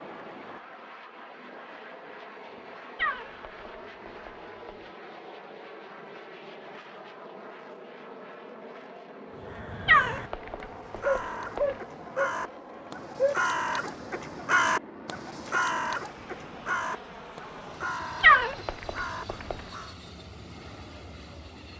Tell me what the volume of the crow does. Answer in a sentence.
The volume of the crow goes up, then down.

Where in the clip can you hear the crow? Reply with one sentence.
The crow can be heard from 9.3 to 19.9 s.